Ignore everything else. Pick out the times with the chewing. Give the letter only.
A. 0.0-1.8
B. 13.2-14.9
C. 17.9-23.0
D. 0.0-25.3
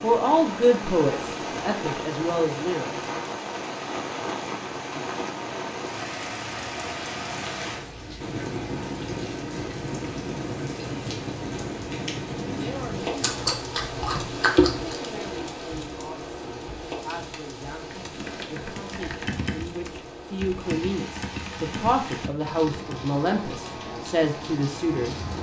B.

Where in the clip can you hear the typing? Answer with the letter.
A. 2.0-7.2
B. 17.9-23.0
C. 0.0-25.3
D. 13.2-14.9
B.